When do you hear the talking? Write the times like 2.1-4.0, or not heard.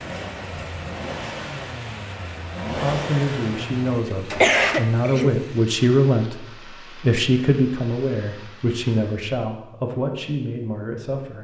2.6-11.3.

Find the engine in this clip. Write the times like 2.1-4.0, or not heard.
0.0-4.8.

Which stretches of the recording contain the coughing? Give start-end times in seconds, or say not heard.
3.9-5.3.